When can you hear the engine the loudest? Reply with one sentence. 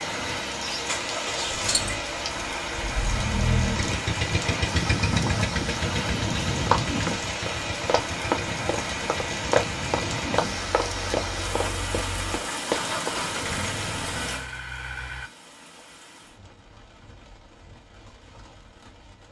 The loudest moment of the engine is at 5 seconds.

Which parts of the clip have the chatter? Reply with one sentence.
You can't hear the chatter here.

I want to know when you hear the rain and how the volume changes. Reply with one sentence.
You can hear the rain from 0.0 to 19.2 s, getting quieter.